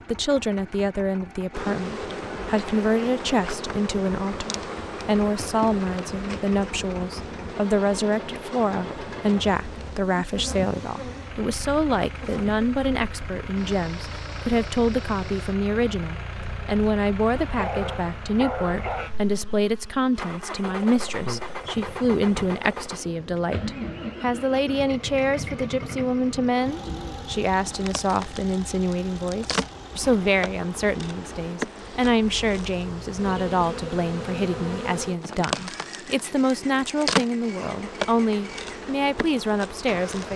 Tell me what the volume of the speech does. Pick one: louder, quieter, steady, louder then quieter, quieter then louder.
steady.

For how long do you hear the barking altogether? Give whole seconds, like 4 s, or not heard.
2 s.